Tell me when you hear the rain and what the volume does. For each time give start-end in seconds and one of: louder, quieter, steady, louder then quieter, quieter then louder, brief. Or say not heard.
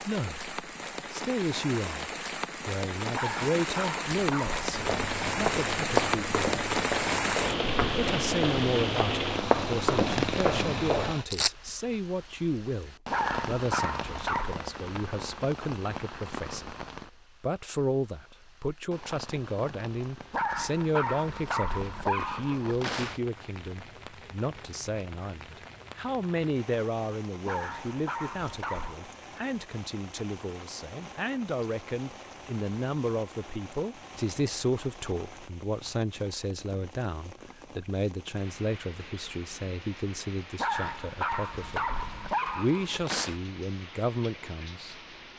0.0-45.3 quieter.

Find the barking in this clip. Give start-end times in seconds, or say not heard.
3.1-4.7, 13.1-14.6, 20.3-23.2, 27.4-28.9, 40.5-43.4.